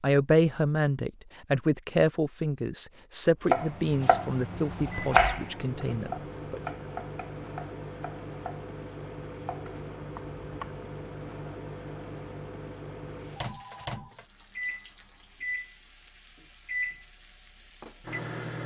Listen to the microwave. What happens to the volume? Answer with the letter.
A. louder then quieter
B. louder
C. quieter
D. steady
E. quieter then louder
D.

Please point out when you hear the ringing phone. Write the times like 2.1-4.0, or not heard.
13.3-14.2.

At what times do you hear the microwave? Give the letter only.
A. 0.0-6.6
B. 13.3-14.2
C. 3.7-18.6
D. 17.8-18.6
C.